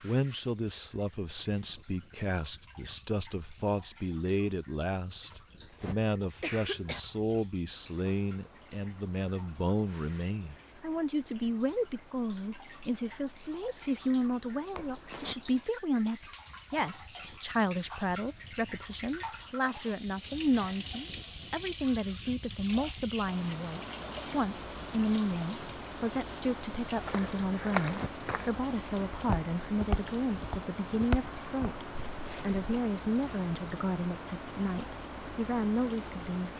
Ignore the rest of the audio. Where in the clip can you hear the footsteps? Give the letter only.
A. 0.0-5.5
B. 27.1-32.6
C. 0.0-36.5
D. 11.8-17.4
B.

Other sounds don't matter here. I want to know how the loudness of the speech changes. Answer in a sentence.
The volume of the speech stays about the same.